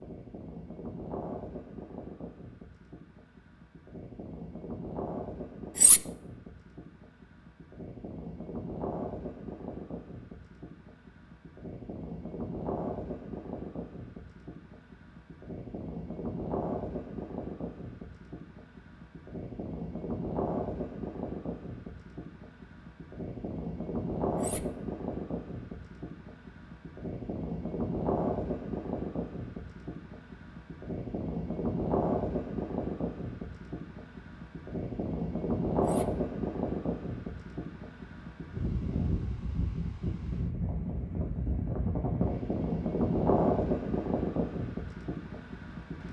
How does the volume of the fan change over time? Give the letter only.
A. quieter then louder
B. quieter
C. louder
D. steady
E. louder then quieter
C.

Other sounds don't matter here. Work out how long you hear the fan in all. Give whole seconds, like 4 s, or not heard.
46 s.